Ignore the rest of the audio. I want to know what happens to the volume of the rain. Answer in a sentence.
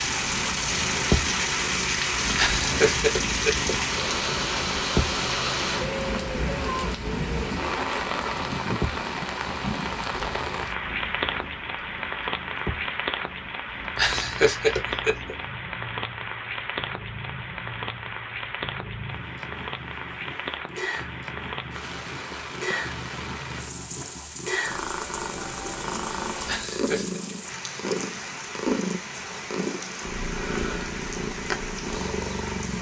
The volume of the rain goes down.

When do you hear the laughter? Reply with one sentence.
You can hear the laughter from 2.4 to 3.7 s, from 13.9 to 15.3 s and from 26.4 to 27.2 s.